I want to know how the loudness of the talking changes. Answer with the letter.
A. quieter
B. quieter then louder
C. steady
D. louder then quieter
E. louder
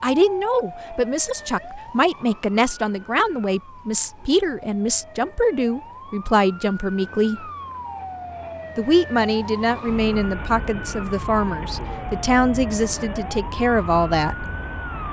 C.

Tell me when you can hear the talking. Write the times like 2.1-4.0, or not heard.
0.0-7.5, 8.8-14.4.